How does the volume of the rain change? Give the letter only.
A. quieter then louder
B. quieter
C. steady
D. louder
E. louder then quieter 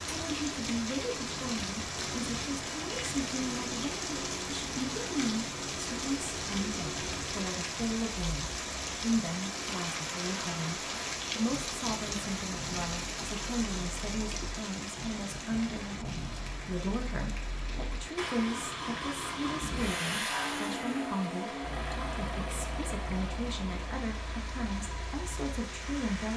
B.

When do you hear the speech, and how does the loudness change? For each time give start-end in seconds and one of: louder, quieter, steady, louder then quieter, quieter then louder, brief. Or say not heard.
0.1-26.3 steady.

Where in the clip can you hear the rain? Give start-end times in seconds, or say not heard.
0.0-26.3.